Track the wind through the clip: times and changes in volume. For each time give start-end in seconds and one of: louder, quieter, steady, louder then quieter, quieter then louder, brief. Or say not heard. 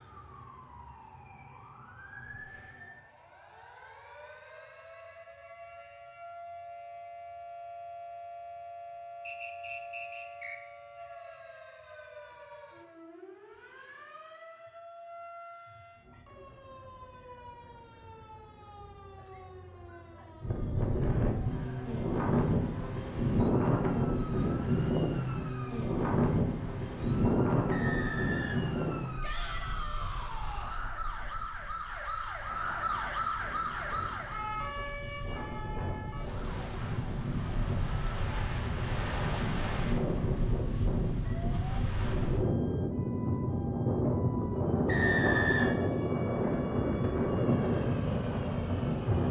20.4-49.2 quieter then louder.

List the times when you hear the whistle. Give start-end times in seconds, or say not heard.
9.2-10.6, 27.7-29.1, 44.9-45.8.